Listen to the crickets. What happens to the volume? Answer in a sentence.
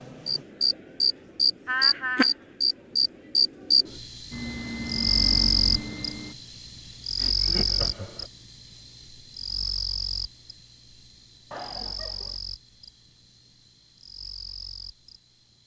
The volume of the crickets goes down.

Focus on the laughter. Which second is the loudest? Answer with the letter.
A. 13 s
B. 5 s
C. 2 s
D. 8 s
C.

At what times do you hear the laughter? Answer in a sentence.
The laughter can be heard from 1.6 to 2.3 s, from 7.2 to 8.2 s and from 11.5 to 12.4 s.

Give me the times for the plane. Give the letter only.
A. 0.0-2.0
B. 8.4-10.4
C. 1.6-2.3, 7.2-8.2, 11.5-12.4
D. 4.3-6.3
D.